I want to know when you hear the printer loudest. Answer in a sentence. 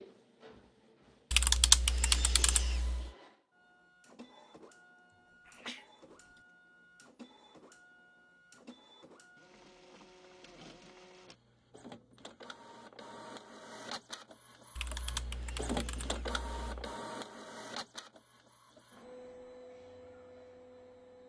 The loudest moment of the printer is at 16 seconds.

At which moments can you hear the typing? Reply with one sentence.
You can hear the typing from 1.3 to 3.1 s and from 14.8 to 16.7 s.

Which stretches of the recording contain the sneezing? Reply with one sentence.
You can hear the sneezing from 5.5 to 6.4 s.